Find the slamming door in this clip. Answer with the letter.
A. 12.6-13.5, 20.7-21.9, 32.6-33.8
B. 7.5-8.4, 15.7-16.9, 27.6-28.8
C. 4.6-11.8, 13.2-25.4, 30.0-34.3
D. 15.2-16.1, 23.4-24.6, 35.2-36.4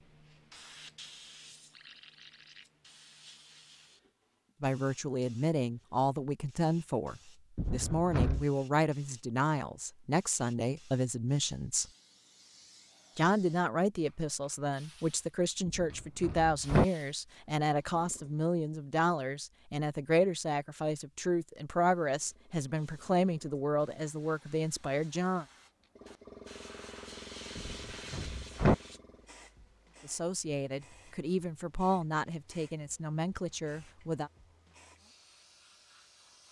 B.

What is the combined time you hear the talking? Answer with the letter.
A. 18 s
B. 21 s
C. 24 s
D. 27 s
C.